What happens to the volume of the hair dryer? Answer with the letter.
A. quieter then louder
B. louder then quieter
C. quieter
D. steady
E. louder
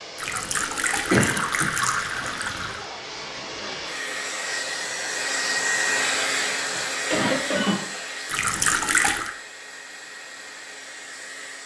B.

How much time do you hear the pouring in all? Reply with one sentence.
You can hear the pouring for 4 seconds altogether.